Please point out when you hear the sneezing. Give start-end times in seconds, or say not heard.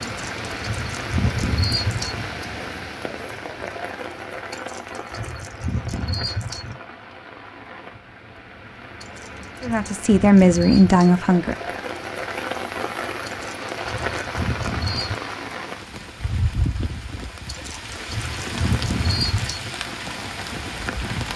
not heard.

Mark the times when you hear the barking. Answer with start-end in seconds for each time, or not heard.
0.0-2.2, 4.5-6.8, 9.0-11.2, 13.2-15.2, 17.4-19.7.